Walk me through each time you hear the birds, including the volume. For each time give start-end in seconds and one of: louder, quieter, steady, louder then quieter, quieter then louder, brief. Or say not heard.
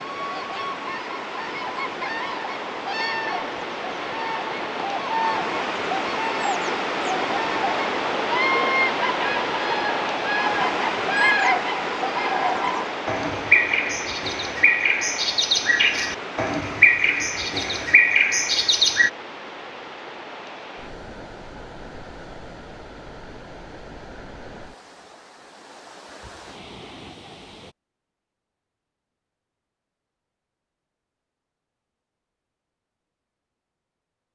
0.0-19.1 louder.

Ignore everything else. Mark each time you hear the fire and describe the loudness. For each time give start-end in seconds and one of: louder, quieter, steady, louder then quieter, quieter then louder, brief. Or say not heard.
not heard.